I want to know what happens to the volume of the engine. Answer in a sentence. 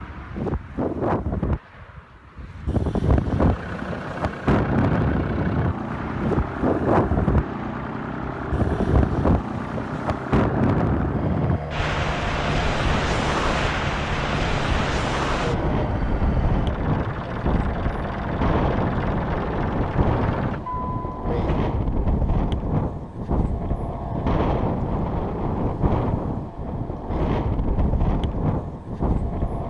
The loudness of the engine stays about the same.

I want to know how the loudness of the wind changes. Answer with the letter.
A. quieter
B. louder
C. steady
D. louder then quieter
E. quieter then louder
C.